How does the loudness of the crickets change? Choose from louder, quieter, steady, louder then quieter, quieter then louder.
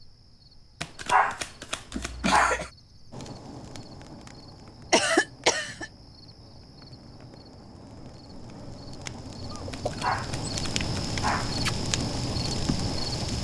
louder.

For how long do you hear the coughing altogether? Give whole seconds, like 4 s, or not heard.
2 s.